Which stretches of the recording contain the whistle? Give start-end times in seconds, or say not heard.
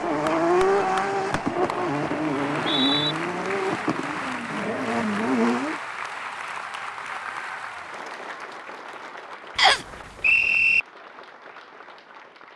2.4-3.1, 9.6-10.8.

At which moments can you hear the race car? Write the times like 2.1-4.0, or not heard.
0.0-5.8.